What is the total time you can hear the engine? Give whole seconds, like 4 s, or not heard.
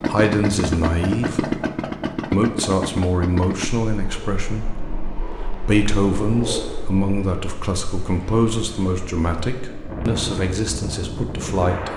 4 s.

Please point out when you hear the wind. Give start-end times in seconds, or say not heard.
3.9-11.9.